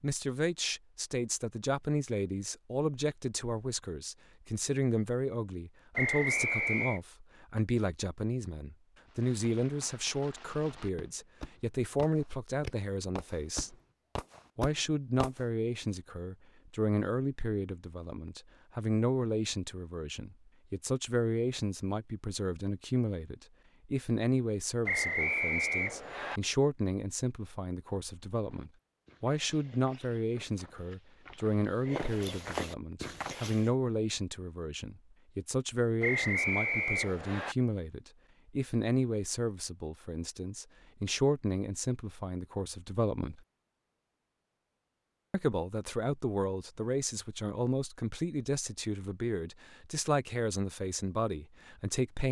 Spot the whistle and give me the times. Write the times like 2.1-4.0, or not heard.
6.0-7.0, 24.9-26.4, 36.0-37.5.